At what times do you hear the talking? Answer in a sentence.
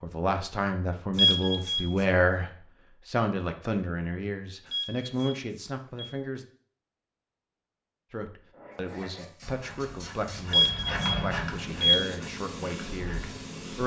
You can hear the talking from 0.0 to 6.5 s and from 8.1 to 13.8 s.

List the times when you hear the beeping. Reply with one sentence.
You can hear the beeping from 1.1 to 2.0 s, from 4.7 to 6.1 s and from 10.5 to 11.9 s.